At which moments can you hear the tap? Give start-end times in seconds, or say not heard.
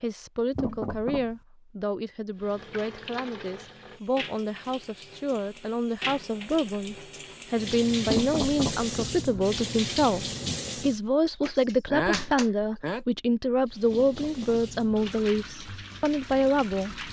2.4-11.0, 13.7-17.0.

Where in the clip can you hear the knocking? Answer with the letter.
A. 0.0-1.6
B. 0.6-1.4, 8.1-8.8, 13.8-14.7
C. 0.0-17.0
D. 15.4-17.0
B.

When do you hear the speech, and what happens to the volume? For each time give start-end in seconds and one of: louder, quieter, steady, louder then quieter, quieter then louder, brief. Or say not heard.
0.0-17.0 louder.